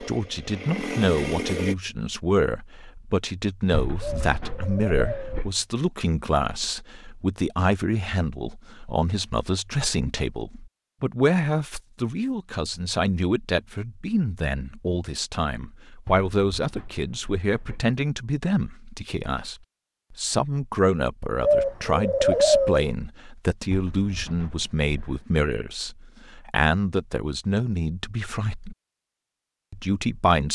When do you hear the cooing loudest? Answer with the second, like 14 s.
22 s.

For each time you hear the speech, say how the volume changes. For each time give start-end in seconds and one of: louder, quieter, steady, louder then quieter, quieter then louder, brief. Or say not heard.
0.0-28.8 steady
29.7-30.4 brief.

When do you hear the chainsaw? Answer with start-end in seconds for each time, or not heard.
0.0-1.8.